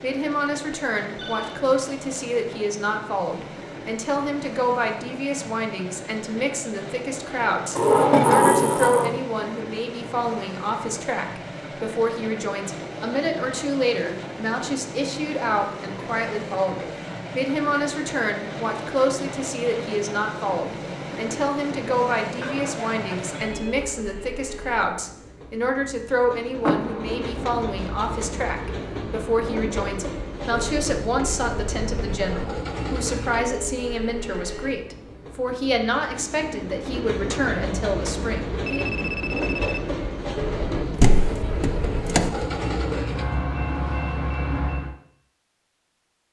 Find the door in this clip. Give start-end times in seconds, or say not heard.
7.8-9.2, 26.6-27.4, 41.0-42.3.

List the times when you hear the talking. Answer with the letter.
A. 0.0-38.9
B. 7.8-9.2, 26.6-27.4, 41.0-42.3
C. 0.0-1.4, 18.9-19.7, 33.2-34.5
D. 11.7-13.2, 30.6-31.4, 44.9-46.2
A.